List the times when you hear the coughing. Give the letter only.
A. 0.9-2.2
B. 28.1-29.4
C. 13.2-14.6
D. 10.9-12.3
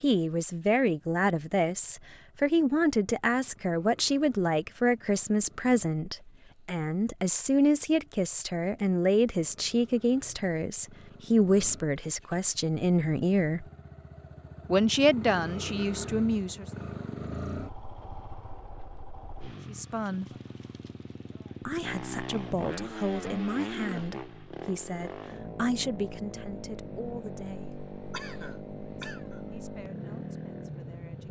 B.